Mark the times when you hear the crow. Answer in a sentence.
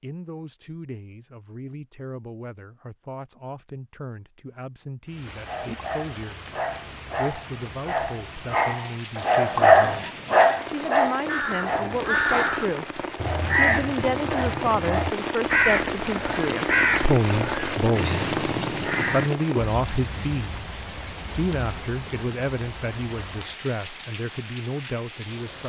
The crow can be heard from 11.2 to 19.3 s.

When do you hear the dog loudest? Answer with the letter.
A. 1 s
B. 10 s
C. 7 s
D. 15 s
B.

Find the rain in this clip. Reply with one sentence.
You can hear the rain from 5.0 to 25.6 s.